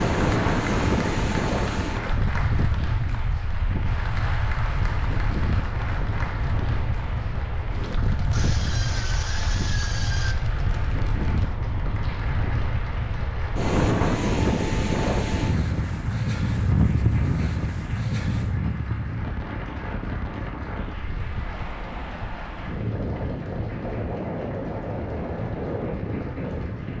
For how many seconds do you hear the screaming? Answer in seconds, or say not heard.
2 s.